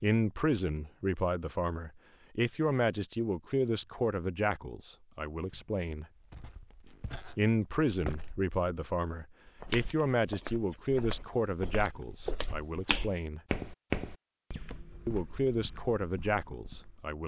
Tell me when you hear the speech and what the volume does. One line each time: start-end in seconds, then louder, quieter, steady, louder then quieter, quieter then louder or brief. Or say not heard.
0.0-6.0 quieter
7.3-13.4 quieter
15.1-17.2 brief.